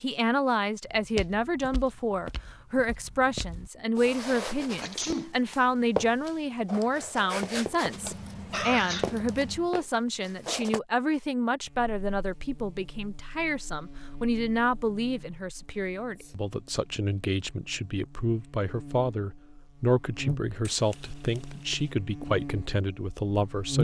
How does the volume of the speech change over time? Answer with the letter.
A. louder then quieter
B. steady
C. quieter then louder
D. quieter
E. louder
B.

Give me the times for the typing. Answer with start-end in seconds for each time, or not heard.
not heard.